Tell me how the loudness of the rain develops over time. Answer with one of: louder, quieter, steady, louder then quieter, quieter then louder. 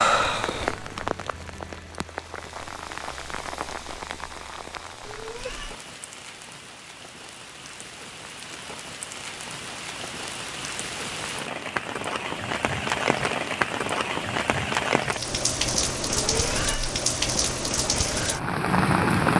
quieter then louder.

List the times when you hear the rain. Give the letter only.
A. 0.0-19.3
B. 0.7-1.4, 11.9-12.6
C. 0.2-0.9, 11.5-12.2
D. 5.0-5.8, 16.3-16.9
A.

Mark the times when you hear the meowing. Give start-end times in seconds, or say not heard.
5.0-5.8, 16.3-16.9.